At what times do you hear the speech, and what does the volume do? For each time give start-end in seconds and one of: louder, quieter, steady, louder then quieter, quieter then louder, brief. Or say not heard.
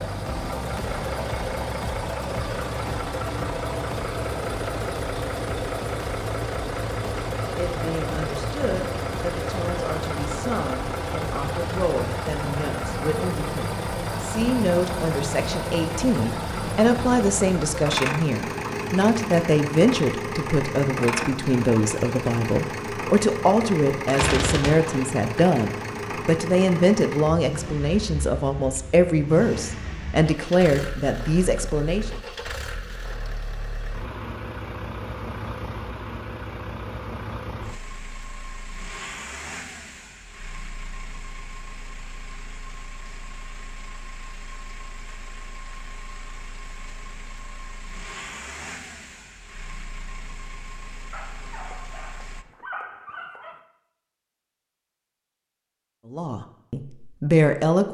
7.5-32.1 louder
56.1-57.8 brief.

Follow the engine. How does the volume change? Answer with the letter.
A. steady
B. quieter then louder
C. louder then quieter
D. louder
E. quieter
E.